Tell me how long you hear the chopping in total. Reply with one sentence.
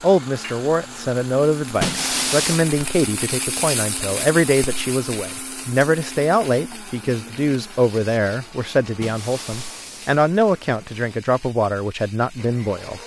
You can't hear the chopping here.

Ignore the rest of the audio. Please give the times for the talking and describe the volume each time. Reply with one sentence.
The talking can be heard from 0.0 to 13.0 s, at a steady volume.